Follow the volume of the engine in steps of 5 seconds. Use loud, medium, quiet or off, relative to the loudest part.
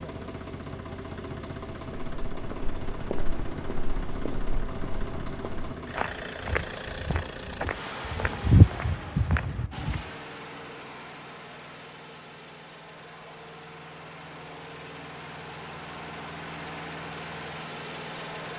loud, loud, medium, loud.